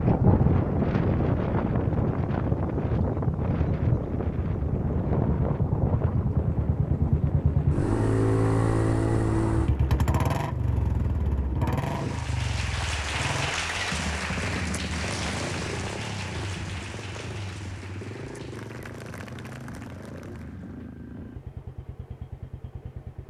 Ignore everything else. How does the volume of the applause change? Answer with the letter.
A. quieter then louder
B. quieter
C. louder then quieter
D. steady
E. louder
B.